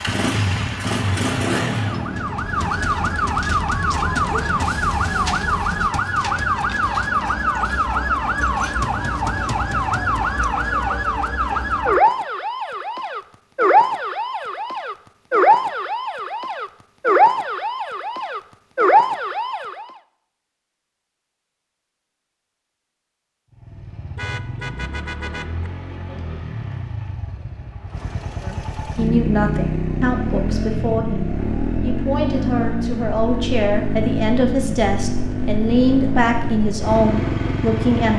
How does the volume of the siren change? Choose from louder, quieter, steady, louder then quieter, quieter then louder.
steady.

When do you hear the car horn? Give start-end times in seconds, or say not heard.
24.1-25.7.